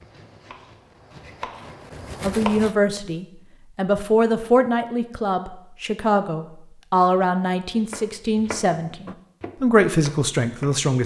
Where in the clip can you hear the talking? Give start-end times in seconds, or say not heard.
2.2-11.0.